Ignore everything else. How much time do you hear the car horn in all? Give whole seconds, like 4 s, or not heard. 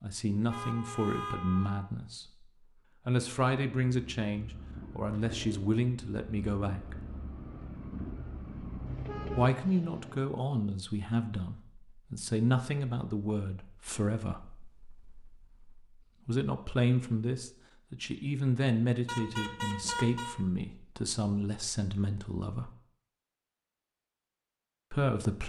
4 s.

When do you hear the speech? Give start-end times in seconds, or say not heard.
0.0-2.5, 3.0-7.0, 9.3-22.7, 24.9-25.4.